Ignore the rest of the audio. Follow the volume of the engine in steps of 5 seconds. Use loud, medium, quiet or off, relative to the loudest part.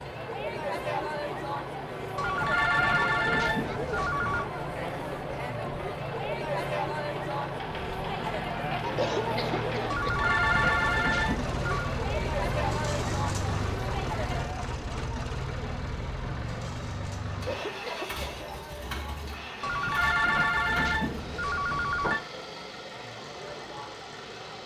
medium, loud, loud, loud, medium.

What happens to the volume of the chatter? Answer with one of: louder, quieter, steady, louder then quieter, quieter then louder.
quieter.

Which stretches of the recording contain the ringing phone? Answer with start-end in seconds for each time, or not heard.
2.1-4.5, 9.9-11.9, 19.6-22.2.